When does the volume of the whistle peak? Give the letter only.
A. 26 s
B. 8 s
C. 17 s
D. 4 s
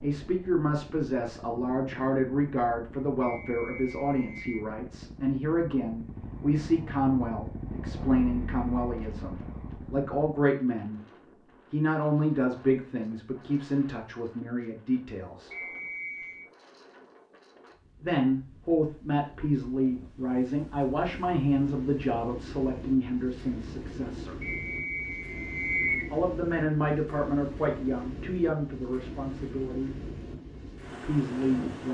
A.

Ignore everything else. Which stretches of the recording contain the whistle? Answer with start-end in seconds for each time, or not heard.
3.2-4.7, 15.5-16.4, 24.4-26.1.